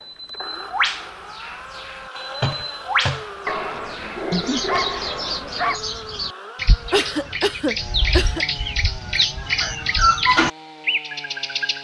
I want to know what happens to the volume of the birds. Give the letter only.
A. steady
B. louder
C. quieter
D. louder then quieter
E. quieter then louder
B.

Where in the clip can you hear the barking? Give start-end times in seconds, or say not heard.
3.5-5.8.